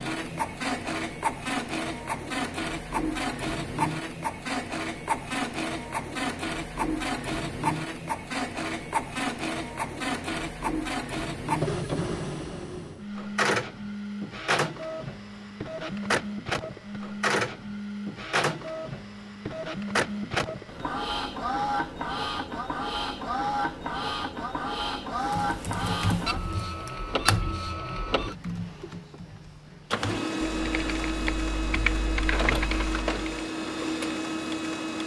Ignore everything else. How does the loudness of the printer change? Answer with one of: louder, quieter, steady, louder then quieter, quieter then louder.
steady.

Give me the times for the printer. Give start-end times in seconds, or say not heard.
0.0-35.0.